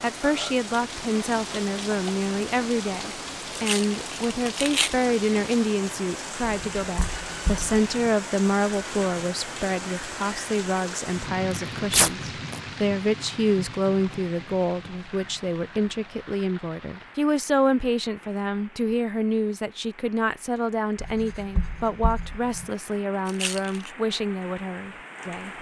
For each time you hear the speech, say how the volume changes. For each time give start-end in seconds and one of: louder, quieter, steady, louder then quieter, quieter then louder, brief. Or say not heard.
0.0-25.5 steady.